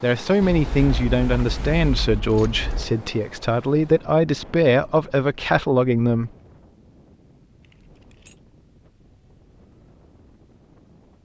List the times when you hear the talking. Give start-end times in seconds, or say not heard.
0.0-6.3.